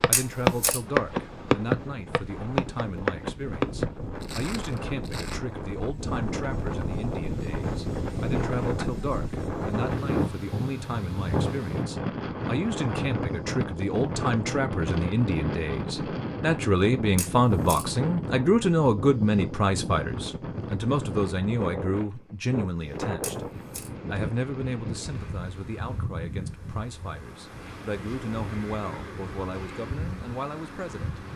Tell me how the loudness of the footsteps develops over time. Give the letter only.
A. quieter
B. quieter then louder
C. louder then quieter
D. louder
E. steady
A.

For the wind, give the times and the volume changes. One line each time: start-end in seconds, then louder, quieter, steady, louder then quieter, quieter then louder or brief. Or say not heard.
0.1-31.3 louder then quieter.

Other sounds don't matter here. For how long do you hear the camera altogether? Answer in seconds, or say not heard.
2 s.